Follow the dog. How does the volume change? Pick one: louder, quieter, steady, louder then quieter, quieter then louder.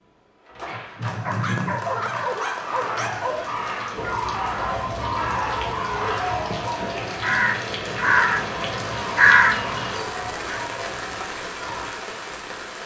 quieter.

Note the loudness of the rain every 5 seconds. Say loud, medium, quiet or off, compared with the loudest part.
medium, loud, loud.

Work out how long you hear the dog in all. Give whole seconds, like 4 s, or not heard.
11 s.